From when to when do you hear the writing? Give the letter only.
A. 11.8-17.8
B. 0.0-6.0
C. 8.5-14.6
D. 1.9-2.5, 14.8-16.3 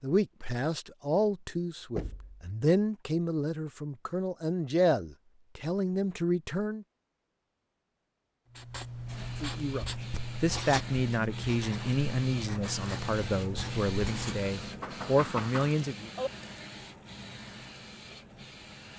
C.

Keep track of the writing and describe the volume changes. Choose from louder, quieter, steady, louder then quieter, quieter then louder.
steady.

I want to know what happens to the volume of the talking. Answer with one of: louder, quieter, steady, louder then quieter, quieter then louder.
steady.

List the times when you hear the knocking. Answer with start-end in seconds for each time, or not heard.
1.9-2.5, 14.8-16.3.